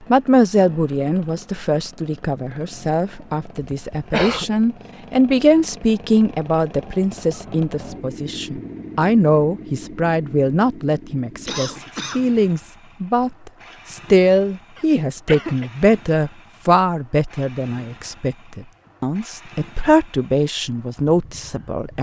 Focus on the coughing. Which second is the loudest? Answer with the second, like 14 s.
4 s.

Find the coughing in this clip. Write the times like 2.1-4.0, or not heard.
3.6-4.5, 11.4-12.2, 14.8-15.7.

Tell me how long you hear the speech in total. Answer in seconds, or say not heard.
22 s.